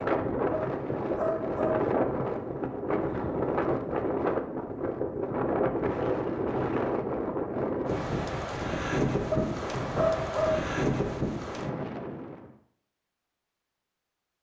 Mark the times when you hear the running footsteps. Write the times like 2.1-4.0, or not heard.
not heard.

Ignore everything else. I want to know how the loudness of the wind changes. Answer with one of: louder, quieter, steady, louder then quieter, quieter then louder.
steady.